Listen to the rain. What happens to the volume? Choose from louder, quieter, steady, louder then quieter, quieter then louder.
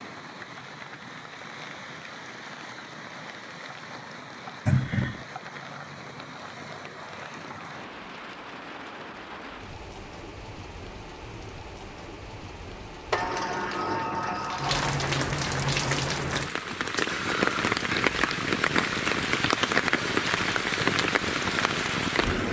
louder.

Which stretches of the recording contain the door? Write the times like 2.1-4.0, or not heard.
4.7-5.2, 13.1-14.9.